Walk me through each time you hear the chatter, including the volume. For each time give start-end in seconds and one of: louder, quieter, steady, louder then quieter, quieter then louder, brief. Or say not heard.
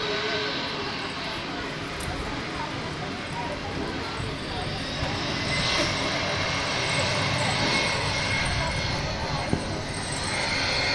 0.0-10.8 steady.